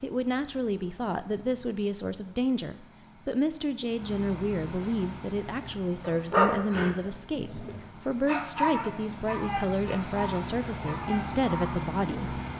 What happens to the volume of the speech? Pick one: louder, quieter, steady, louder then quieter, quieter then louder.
steady.